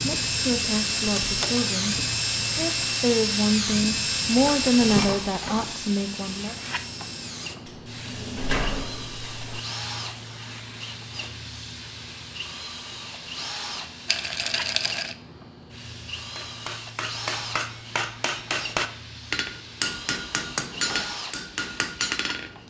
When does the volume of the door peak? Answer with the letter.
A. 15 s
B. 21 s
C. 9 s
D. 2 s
C.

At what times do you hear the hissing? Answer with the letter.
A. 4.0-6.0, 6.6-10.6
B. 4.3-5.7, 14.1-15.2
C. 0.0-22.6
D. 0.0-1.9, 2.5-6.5
C.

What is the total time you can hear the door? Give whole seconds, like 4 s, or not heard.
3 s.